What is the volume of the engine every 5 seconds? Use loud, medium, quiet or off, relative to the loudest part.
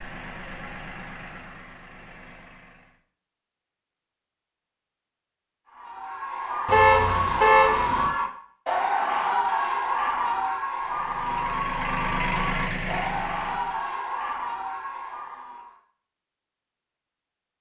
medium, off, loud, off.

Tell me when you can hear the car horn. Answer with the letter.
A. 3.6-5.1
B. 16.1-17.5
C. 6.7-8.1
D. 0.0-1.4
C.